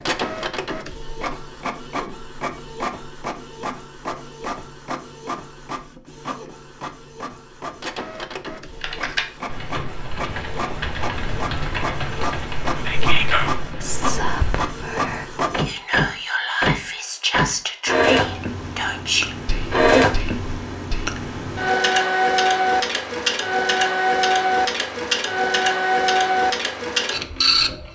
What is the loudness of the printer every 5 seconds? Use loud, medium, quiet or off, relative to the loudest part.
medium, quiet, medium, loud, loud, loud.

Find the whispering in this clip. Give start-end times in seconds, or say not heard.
12.8-21.1.